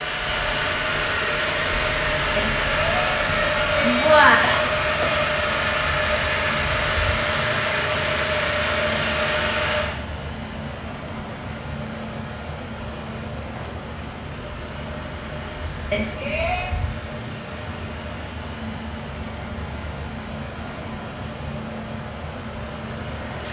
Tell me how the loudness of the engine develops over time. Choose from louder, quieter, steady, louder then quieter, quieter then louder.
quieter.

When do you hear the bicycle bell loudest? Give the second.
4 s.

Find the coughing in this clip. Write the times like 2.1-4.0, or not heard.
4.4-5.2.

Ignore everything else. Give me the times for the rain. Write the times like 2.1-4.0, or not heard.
0.0-23.4.